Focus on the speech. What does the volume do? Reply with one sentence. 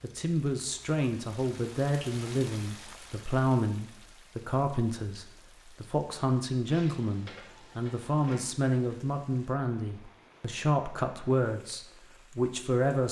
The loudness of the speech stays about the same.